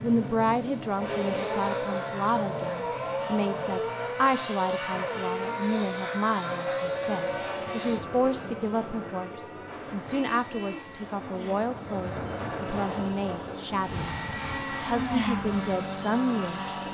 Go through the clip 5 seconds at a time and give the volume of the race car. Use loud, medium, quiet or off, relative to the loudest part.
loud, loud, medium, loud.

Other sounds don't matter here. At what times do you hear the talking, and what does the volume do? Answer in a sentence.
The talking can be heard from 0.0 to 16.8 s, at a steady volume.